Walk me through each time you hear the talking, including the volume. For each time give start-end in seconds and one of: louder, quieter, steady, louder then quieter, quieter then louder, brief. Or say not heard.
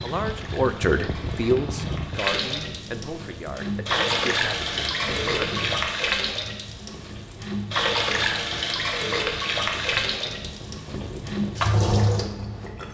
0.0-5.7 quieter.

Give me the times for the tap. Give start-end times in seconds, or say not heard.
0.0-12.9.